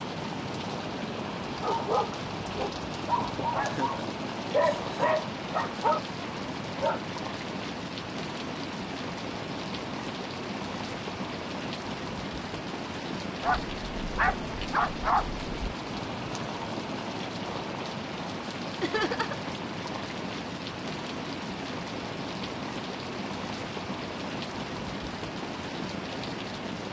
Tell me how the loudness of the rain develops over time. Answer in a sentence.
The volume of the rain stays about the same.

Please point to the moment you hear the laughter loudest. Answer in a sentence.
The loudest moment of the laughter is at 19 seconds.